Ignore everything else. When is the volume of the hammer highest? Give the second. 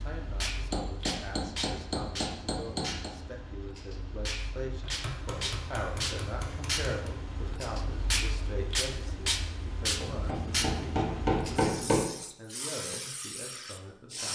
12 s.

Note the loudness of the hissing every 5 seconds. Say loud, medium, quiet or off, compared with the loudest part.
medium, loud, loud.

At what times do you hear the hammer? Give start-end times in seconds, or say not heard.
0.7-3.1, 4.8-7.2, 9.9-12.1.